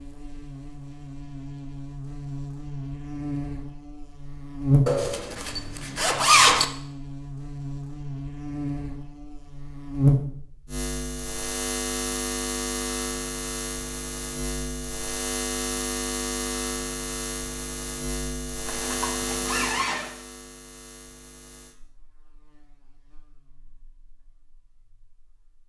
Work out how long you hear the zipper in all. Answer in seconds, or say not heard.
3 s.